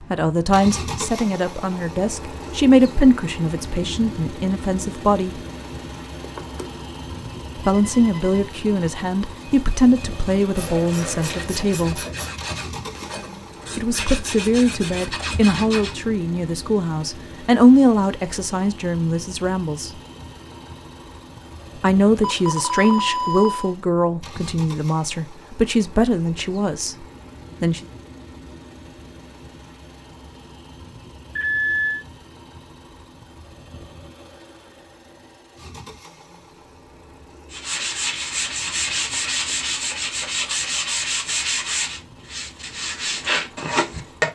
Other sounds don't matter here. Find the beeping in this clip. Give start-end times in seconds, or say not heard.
6.2-6.7, 7.8-8.4, 22.2-23.8, 31.4-32.0.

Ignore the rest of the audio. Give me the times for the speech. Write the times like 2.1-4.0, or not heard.
0.0-5.4, 7.5-12.1, 13.8-19.9, 21.8-27.8.